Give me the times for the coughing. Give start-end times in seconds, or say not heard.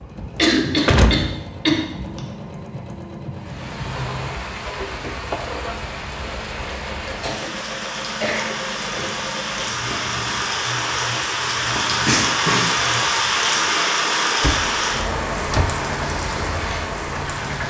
0.3-2.2, 7.2-9.2, 12.1-12.7.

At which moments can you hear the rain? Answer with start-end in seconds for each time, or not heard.
3.3-17.6.